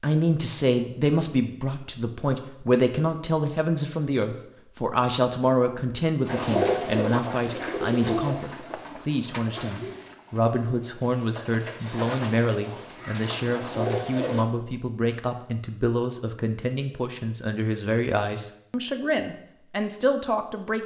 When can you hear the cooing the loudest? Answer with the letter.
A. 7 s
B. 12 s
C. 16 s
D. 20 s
A.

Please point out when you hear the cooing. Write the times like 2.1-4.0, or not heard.
6.2-14.4.